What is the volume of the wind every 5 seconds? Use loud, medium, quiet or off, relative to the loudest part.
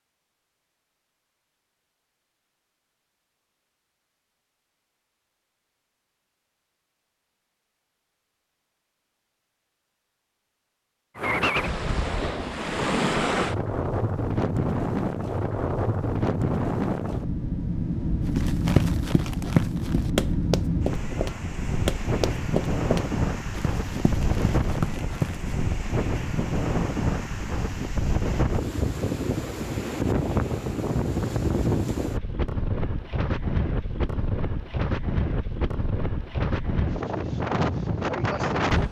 off, off, loud, loud, loud, loud, loud, loud.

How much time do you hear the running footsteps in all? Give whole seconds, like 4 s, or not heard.
7 s.